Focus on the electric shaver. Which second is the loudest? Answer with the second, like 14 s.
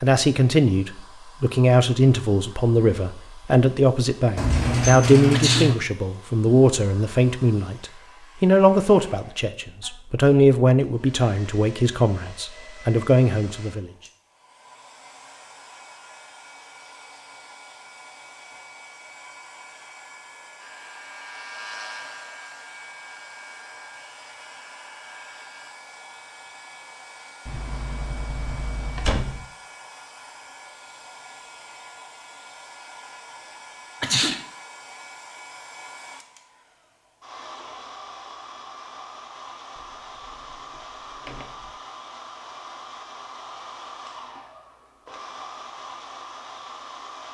22 s.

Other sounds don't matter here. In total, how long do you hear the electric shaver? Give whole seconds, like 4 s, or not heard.
5 s.